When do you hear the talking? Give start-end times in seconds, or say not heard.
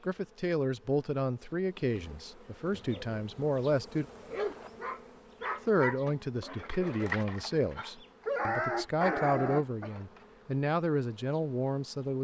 0.0-4.0, 5.7-12.1.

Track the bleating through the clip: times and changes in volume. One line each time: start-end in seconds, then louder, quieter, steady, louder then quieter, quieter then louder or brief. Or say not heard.
not heard.